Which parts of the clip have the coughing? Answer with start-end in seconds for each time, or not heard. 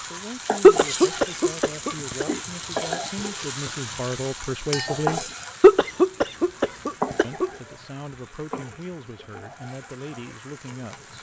0.6-2.2, 5.6-7.5.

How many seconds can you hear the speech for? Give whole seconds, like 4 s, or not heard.
9 s.